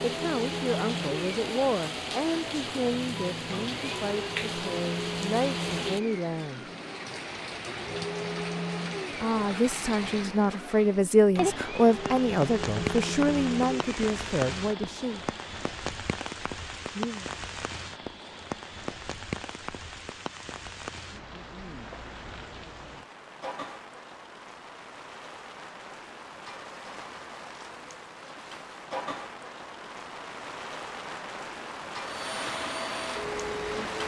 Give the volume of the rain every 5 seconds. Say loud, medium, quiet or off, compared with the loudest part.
loud, loud, loud, loud, medium, medium, loud.